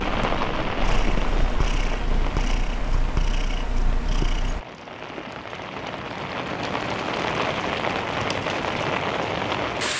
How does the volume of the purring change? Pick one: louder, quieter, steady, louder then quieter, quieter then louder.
steady.